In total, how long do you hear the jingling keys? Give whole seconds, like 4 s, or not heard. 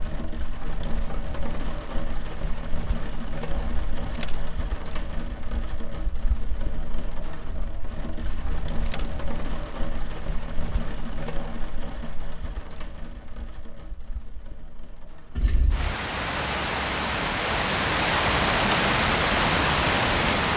3 s.